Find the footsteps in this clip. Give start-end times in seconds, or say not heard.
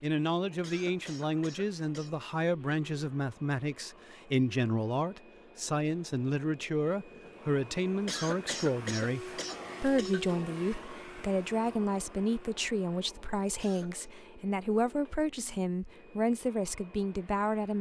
not heard.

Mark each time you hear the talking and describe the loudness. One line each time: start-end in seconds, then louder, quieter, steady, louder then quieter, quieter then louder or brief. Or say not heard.
0.0-17.7 steady.